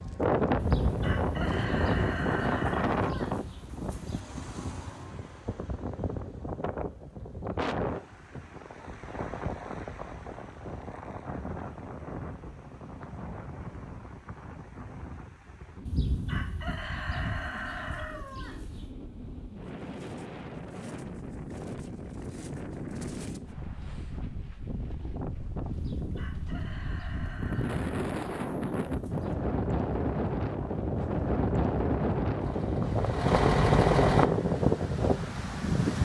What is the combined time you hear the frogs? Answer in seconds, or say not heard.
not heard.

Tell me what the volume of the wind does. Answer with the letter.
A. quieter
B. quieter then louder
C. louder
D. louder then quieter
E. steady
B.